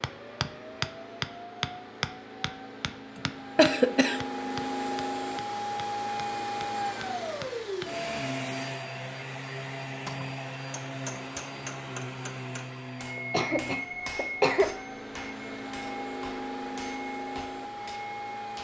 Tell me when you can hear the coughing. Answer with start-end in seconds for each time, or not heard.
3.1-4.2, 13.2-14.7.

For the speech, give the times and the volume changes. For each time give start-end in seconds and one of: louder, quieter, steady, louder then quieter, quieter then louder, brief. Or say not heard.
not heard.